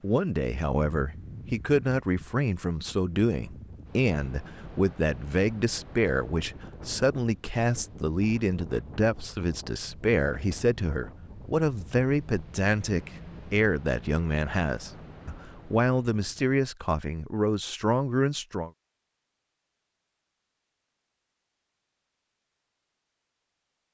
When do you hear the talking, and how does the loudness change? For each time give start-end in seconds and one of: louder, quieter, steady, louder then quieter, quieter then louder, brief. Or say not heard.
0.0-18.7 steady.